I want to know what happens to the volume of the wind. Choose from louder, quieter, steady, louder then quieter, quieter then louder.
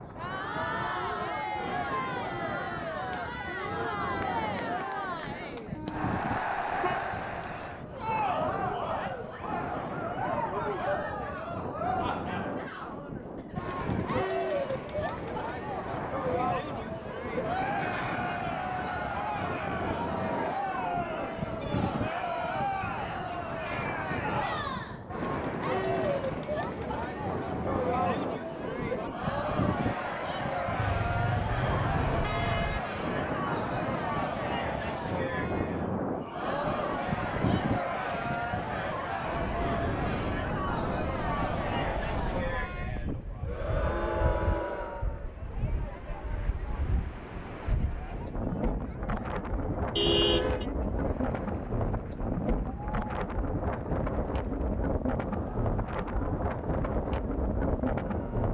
louder.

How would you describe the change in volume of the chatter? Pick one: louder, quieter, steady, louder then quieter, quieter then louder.
quieter.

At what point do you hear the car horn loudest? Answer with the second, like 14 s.
50 s.